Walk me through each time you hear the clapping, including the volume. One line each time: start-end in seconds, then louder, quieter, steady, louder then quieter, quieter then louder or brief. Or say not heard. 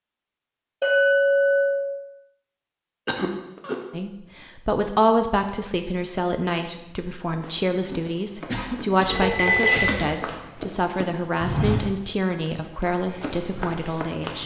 not heard.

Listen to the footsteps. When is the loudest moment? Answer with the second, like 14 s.
12 s.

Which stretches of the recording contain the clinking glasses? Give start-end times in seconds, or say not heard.
0.8-1.8, 9.1-10.1.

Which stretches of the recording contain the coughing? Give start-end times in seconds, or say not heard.
3.0-3.8, 8.4-10.3.